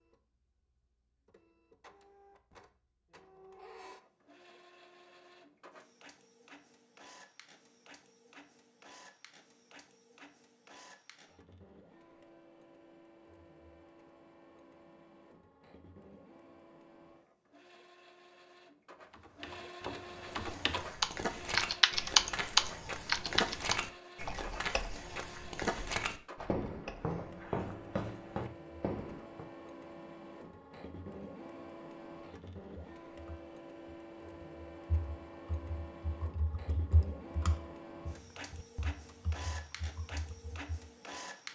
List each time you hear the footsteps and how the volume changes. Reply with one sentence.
The footsteps can be heard from 20.4 to 29.5 s, at a steady volume.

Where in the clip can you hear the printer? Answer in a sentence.
The printer can be heard from 0.0 to 41.5 s.